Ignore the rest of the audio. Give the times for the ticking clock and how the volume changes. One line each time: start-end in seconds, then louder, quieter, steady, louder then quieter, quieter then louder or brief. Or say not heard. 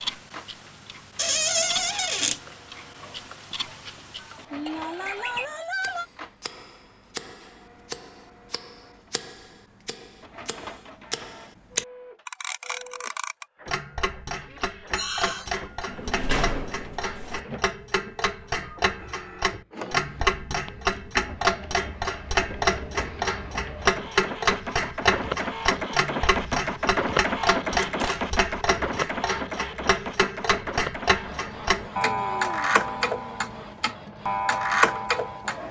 0.0-35.6 louder.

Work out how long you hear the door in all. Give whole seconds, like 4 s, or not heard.
4 s.